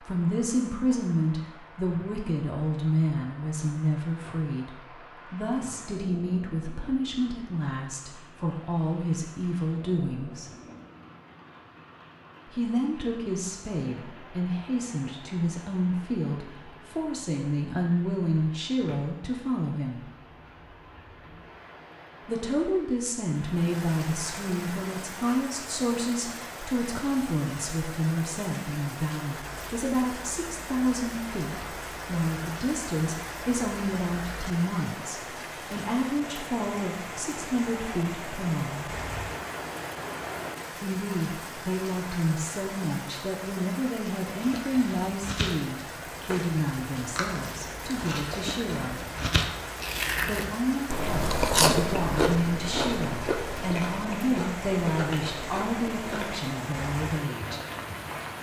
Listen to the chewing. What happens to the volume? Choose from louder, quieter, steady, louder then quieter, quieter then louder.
louder then quieter.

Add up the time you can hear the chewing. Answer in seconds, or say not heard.
12 s.